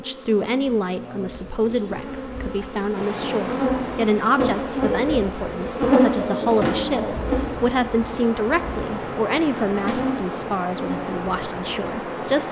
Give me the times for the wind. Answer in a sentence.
You can hear the wind from 2.9 to 12.4 s.